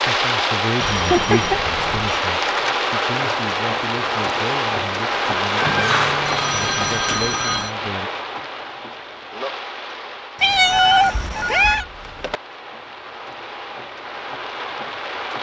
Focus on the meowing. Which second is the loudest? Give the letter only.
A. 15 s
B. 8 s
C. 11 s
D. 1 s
C.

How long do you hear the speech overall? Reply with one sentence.
The speech can be heard for 8 seconds in total.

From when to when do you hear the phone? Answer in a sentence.
You can hear the phone from 0.8 to 2.1 s, from 5.7 to 7.8 s and from 10.7 to 12.4 s.